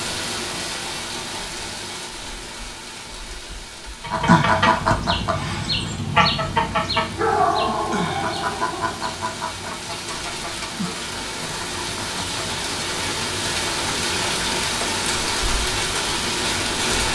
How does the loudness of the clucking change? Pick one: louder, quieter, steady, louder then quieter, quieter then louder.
quieter.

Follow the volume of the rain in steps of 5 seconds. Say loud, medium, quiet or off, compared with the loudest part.
medium, quiet, loud, loud.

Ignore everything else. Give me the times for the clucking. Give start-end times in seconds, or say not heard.
4.0-12.8.